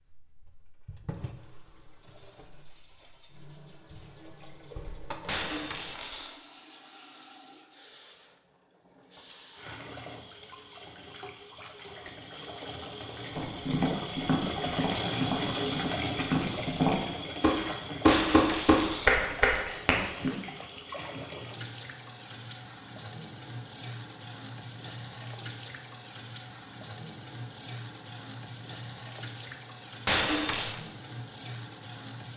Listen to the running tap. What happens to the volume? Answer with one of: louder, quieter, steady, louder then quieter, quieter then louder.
louder then quieter.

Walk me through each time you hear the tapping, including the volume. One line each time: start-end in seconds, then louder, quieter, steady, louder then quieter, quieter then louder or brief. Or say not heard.
13.3-20.3 louder.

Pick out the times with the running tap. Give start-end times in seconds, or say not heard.
0.0-32.3.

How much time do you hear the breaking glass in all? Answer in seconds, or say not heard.
3 s.